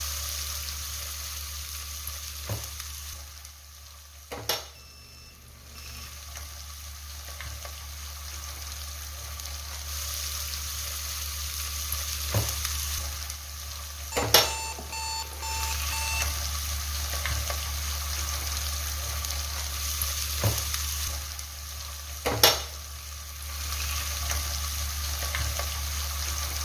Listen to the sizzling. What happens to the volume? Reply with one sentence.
The loudness of the sizzling goes up.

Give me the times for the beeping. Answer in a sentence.
You can hear the beeping from 4.8 to 6.2 s and from 14.1 to 16.3 s.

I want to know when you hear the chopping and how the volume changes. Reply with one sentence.
You can't hear the chopping here.